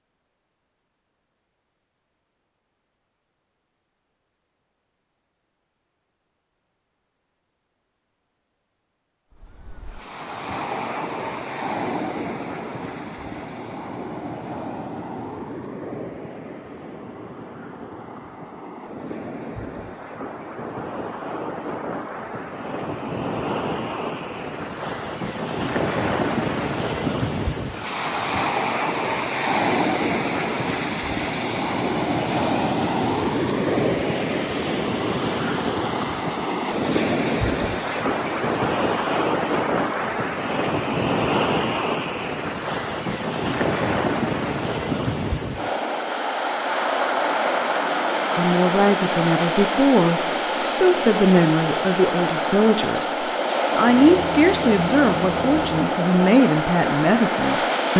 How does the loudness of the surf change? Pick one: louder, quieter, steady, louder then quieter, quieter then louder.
louder.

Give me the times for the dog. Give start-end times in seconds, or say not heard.
not heard.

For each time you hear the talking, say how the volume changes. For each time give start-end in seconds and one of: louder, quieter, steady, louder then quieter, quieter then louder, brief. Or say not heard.
48.4-57.9 steady.